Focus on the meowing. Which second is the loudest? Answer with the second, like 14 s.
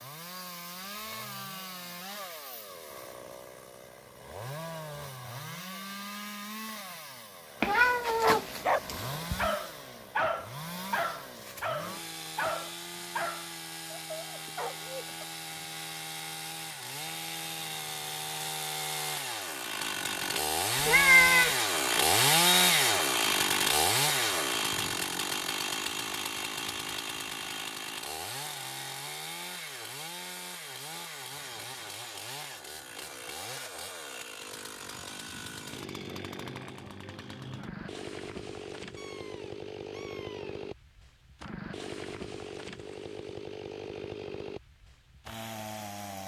21 s.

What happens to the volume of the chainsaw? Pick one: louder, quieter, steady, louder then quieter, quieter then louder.
louder then quieter.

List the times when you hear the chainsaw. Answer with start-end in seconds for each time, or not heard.
0.0-46.2.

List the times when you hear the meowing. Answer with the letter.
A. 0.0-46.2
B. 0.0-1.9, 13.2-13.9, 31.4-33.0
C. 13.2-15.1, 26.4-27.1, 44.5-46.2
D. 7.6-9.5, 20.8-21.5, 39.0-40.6
D.